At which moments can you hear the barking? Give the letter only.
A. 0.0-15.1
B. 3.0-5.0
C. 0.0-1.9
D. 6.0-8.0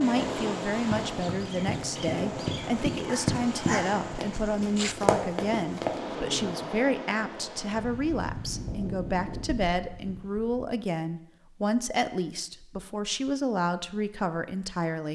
B.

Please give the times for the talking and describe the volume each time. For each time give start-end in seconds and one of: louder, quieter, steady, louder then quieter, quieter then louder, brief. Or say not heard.
0.0-15.1 steady.